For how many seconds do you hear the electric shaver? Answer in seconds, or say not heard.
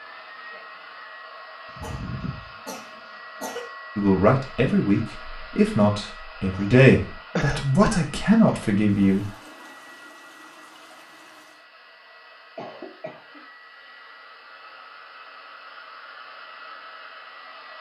not heard.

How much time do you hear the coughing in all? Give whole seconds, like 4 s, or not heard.
5 s.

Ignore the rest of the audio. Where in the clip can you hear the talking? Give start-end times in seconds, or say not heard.
4.0-9.3.